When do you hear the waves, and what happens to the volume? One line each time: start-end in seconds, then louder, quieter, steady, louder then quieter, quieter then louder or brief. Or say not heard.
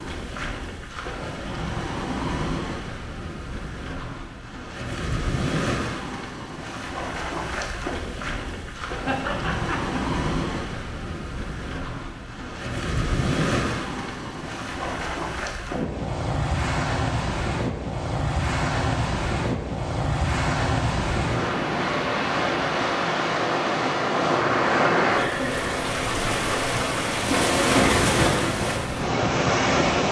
0.0-30.0 louder.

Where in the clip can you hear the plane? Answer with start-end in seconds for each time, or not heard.
not heard.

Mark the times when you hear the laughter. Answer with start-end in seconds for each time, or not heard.
9.1-10.0, 25.1-25.6.